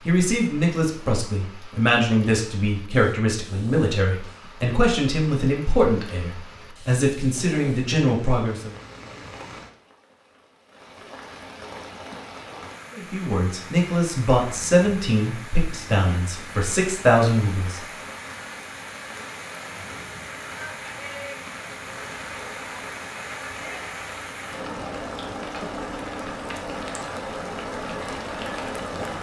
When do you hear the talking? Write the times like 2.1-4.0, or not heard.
0.1-8.8, 12.9-17.8.